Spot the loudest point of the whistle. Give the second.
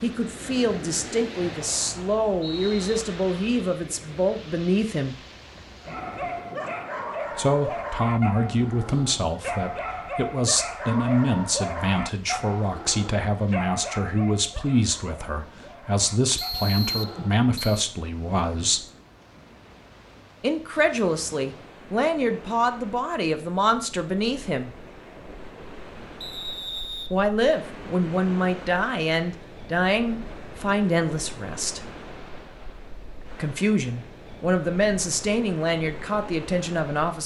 17 s.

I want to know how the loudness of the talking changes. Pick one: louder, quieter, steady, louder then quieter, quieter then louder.
steady.